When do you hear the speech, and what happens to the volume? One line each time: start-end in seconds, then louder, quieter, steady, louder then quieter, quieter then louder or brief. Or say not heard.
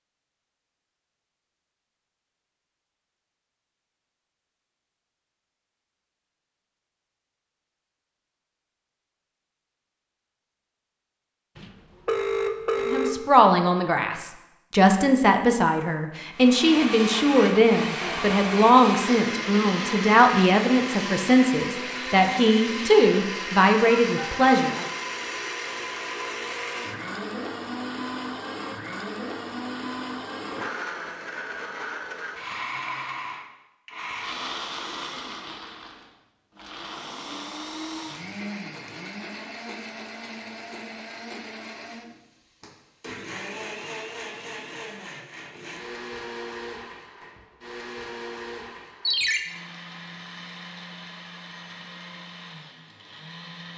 12.8-24.9 steady.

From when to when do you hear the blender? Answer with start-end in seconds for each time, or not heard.
16.3-53.7.